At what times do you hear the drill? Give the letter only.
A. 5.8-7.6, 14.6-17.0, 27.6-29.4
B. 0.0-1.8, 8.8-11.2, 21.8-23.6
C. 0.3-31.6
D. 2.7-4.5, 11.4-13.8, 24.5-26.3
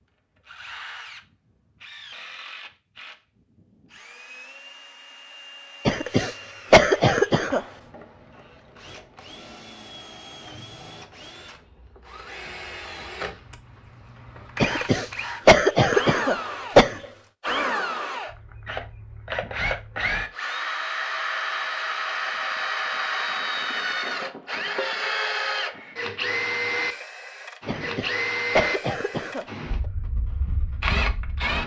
C.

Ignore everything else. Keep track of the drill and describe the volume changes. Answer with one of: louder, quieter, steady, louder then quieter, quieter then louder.
louder.